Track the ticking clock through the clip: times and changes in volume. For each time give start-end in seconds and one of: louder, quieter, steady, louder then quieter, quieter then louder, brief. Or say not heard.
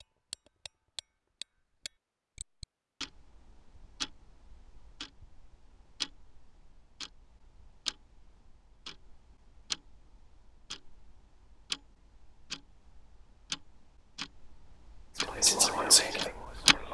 0.0-16.8 steady.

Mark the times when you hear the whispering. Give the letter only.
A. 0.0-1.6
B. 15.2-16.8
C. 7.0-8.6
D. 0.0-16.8
B.